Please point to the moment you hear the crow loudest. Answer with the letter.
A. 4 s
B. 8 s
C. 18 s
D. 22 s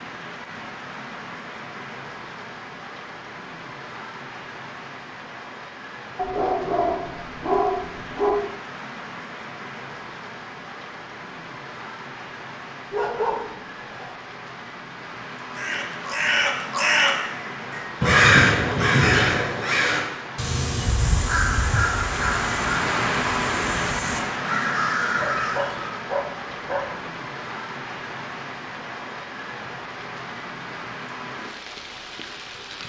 C.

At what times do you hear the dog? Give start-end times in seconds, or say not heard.
6.2-8.4, 12.9-14.1, 25.1-27.1.